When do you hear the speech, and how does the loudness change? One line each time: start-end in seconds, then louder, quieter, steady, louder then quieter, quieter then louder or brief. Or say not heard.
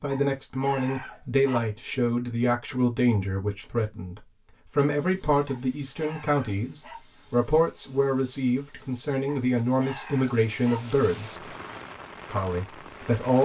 0.0-11.5 steady
12.2-13.4 brief.